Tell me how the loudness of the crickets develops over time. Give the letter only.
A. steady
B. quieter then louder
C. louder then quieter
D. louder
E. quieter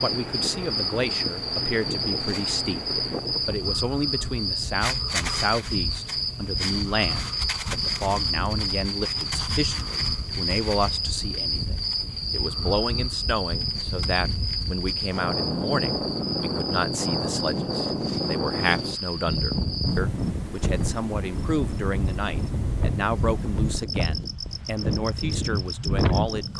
E.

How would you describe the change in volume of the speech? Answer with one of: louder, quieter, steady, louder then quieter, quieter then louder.
steady.